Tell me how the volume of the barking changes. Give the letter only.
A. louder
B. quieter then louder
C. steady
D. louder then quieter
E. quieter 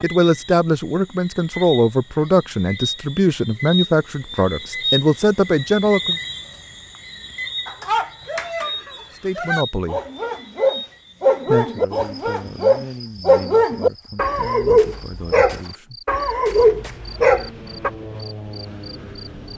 A.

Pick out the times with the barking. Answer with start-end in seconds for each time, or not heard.
7.7-17.9.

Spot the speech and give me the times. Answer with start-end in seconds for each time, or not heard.
0.0-6.2, 9.2-10.0, 11.4-16.1.